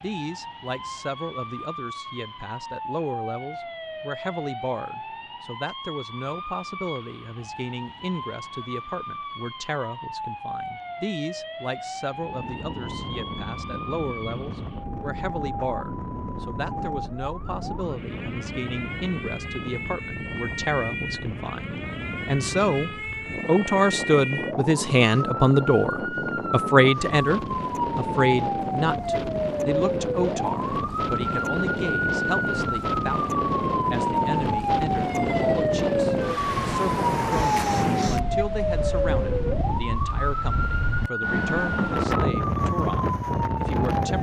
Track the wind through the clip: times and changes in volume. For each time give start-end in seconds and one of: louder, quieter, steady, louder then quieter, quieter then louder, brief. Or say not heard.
12.1-44.1 louder.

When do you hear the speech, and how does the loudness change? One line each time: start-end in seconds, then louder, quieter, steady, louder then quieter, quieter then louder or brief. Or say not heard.
0.0-44.1 louder then quieter.